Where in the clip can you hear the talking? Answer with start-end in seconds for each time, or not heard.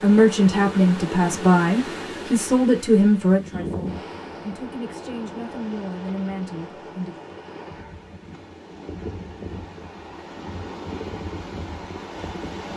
0.0-7.2.